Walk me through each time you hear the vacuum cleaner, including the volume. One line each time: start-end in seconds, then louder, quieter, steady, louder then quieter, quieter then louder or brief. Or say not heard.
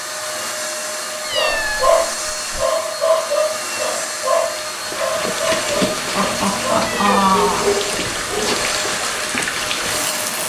0.0-10.4 steady.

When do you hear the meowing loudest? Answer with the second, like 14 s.
7 s.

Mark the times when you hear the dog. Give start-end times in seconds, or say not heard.
1.3-8.8.